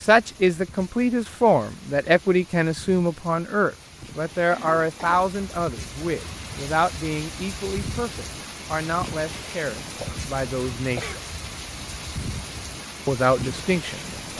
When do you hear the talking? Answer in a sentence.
The talking can be heard from 0.0 to 11.1 s and from 13.1 to 14.3 s.